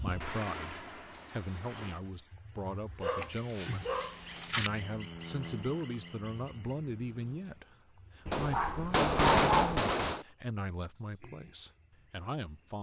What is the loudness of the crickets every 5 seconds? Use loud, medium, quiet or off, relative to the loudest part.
loud, medium, quiet.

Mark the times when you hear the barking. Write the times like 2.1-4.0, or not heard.
3.0-4.7, 8.2-9.8.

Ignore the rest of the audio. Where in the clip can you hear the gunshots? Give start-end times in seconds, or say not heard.
8.3-10.2.